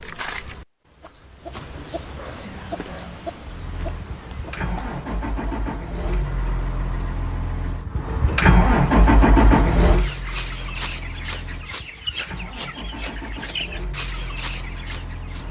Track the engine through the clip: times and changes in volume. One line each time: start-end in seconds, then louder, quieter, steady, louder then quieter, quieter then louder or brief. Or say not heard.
3.4-15.4 louder then quieter.